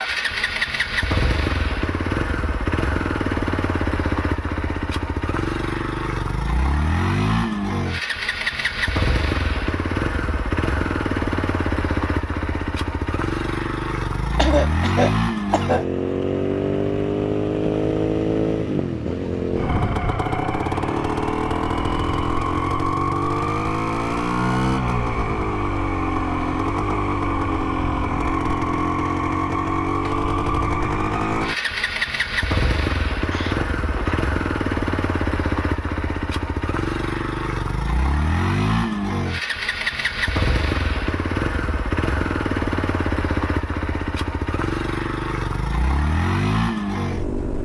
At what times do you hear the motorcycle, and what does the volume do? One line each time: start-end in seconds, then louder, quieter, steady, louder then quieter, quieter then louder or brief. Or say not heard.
0.0-47.5 steady.